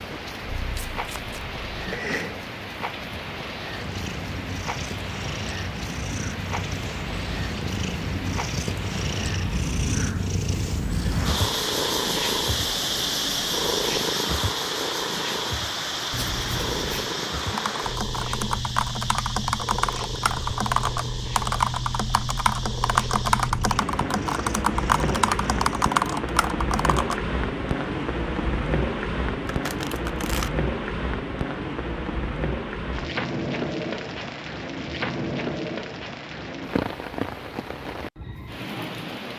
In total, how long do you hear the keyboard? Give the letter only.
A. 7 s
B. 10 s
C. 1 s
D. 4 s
B.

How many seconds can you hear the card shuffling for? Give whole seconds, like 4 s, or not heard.
3 s.